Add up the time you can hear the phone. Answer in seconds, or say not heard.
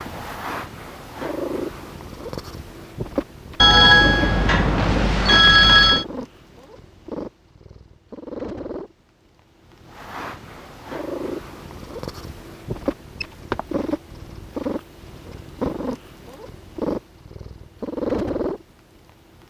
3 s.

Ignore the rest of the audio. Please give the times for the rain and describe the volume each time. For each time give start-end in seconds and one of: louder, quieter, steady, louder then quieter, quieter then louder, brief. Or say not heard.
not heard.